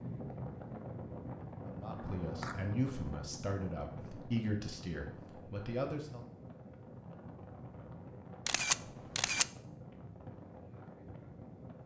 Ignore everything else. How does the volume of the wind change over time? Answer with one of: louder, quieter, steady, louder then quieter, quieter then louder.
quieter.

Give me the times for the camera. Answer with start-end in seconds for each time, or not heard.
1.9-2.6, 8.4-9.4.